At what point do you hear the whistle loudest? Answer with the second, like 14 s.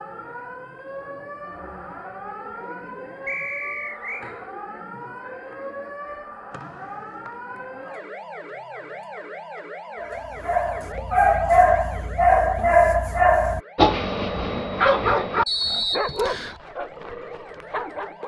16 s.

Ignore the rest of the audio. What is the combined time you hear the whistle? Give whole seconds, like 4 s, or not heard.
3 s.